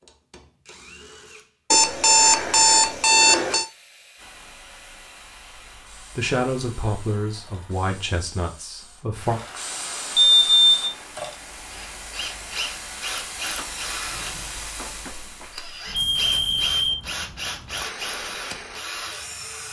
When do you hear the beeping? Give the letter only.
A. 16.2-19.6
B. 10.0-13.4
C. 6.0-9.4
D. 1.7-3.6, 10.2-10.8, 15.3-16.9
D.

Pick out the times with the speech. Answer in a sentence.
You can hear the speech from 6.0 to 9.4 s.